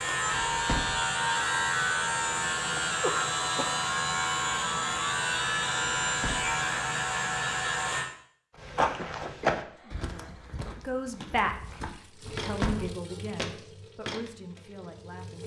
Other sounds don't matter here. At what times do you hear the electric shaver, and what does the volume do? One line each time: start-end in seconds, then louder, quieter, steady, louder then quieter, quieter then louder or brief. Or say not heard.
0.0-8.1 steady.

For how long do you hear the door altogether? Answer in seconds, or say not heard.
2 s.